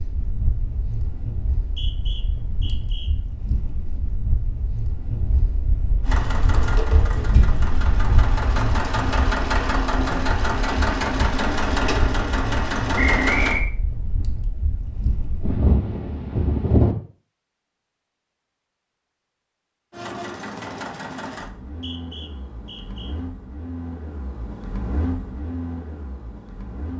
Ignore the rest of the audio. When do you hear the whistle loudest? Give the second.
13 s.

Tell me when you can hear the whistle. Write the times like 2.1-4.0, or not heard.
1.6-3.1, 12.9-13.7, 21.6-23.1.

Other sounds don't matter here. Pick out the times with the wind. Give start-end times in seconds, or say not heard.
0.0-16.9.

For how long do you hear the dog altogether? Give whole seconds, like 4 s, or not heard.
not heard.